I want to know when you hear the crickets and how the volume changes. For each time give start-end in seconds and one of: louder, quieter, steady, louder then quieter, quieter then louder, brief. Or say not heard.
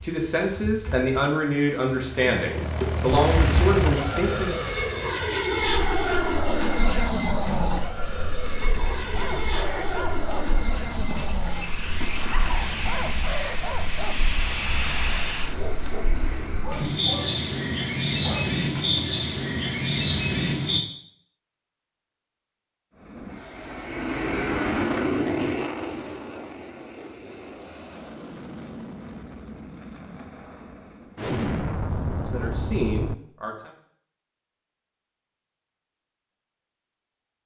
0.0-20.8 quieter then louder.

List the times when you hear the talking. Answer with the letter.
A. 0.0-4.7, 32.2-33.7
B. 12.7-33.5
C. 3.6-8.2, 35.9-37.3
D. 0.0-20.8
A.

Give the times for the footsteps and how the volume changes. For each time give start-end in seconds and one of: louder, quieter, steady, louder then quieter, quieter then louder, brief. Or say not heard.
not heard.